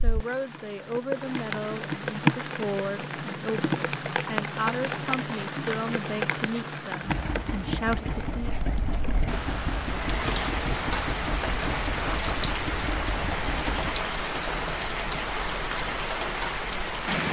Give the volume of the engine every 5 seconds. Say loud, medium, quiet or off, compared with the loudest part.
off, loud, loud, off.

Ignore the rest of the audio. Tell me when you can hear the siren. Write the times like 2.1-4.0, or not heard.
not heard.